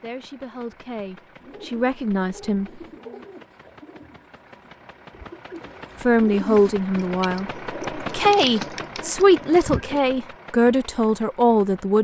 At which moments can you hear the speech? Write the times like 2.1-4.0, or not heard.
0.0-2.7, 6.0-11.9.